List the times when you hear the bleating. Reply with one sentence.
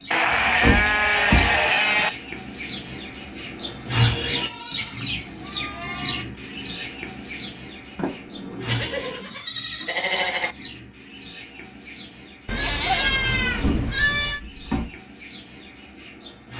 The bleating can be heard from 0.1 to 2.1 s, from 4.3 to 6.2 s, from 8.7 to 10.6 s and from 12.4 to 14.4 s.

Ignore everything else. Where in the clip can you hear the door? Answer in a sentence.
You can hear the door from 0.3 to 1.6 s, from 8.0 to 9.3 s and from 13.1 to 14.9 s.